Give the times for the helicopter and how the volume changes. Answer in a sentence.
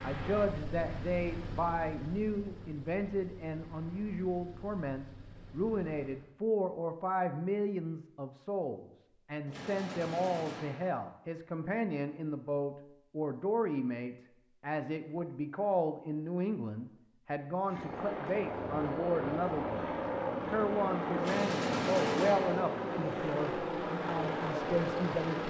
The helicopter can be heard from 0.0 to 6.3 s, getting quieter; and from 17.6 to 25.4 s, at a steady volume.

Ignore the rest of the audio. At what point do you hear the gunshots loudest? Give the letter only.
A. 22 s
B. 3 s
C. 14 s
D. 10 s
A.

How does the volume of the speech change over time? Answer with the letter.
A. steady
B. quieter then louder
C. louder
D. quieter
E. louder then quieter
A.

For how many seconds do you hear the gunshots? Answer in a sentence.
The gunshots can be heard for 3 seconds in total.